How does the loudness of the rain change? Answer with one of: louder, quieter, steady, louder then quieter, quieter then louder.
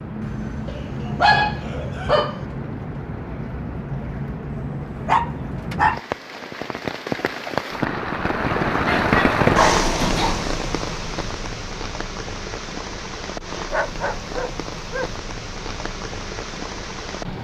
louder then quieter.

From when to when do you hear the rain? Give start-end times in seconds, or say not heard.
0.0-17.3.